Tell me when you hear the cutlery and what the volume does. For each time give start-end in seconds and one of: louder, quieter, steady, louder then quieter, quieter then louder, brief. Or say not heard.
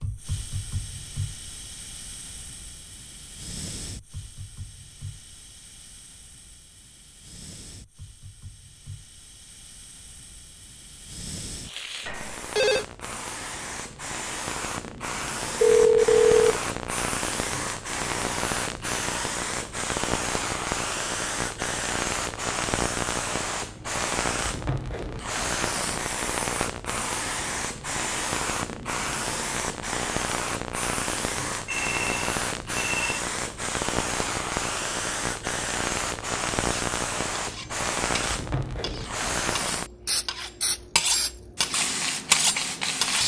36.7-43.2 louder.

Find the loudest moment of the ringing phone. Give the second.
16 s.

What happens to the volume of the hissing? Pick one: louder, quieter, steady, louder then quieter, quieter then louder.
louder.